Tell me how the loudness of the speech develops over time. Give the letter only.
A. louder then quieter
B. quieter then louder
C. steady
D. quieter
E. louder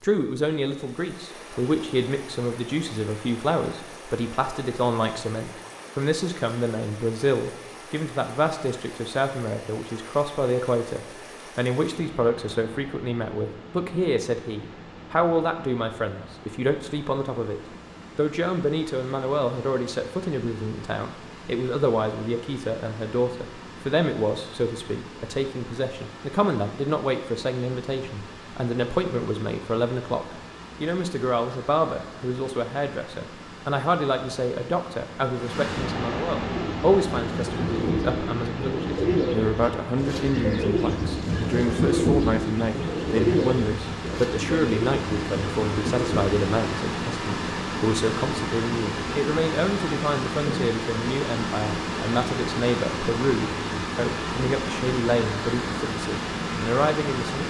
C.